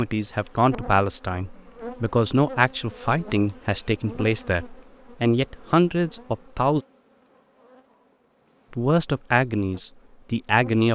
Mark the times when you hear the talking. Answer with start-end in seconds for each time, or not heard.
0.0-6.8, 8.7-10.9.